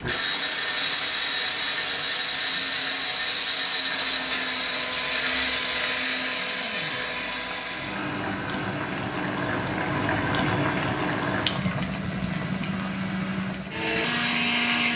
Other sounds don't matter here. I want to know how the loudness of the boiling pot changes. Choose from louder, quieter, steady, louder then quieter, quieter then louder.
louder then quieter.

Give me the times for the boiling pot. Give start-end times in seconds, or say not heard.
0.0-14.9.